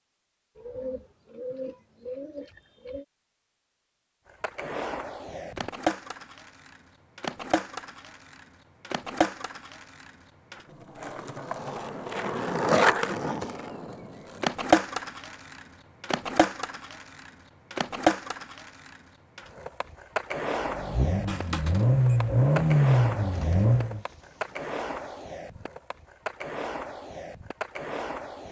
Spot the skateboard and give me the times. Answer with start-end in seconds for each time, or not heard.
4.2-28.4.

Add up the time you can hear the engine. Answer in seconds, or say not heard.
3 s.